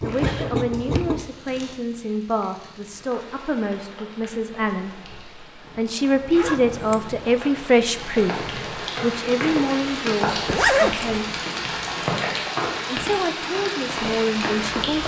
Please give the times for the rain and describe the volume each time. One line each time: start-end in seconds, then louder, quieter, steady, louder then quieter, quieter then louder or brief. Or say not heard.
0.0-15.0 louder.